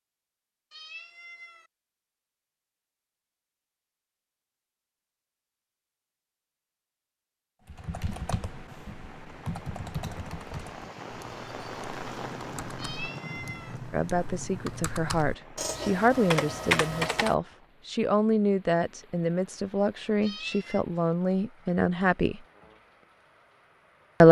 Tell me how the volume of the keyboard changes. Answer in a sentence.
The volume of the keyboard goes down, then up.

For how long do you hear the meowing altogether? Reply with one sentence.
You can hear the meowing for 3 seconds altogether.